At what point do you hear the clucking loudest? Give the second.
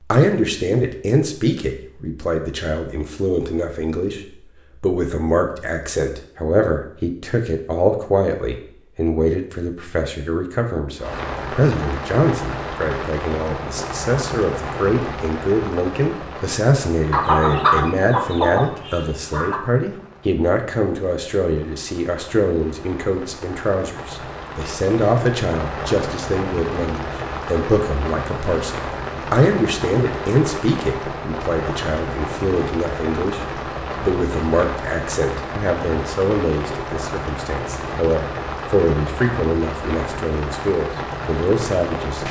18 s.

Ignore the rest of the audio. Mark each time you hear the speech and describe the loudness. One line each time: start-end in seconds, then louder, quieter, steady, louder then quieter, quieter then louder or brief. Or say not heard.
0.1-42.2 steady.